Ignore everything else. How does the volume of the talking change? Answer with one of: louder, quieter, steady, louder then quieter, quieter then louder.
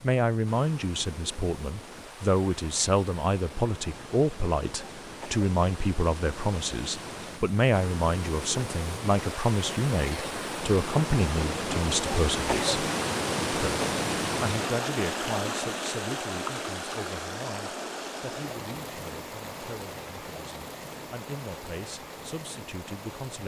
quieter.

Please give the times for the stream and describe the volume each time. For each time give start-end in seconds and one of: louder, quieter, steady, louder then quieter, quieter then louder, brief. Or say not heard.
0.0-23.4 louder then quieter.